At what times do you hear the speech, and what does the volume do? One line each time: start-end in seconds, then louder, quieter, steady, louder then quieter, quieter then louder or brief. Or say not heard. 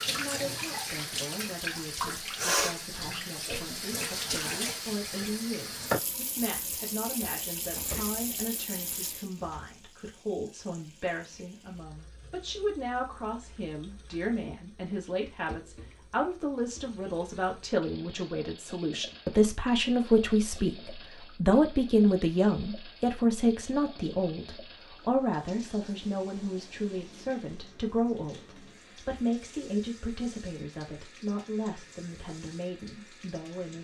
0.1-33.7 louder then quieter.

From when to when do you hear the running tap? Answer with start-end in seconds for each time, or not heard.
0.0-33.7.